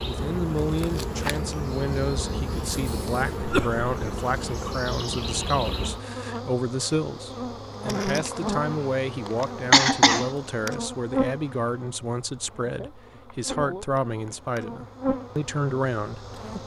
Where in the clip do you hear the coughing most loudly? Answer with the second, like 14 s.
10 s.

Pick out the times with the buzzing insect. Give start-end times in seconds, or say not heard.
0.0-16.6.